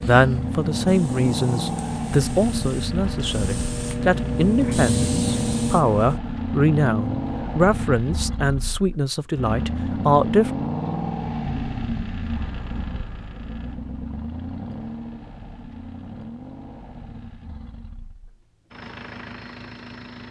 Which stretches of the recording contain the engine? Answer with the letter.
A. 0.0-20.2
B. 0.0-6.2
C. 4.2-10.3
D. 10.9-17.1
A.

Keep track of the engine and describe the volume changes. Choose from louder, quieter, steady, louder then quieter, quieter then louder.
quieter.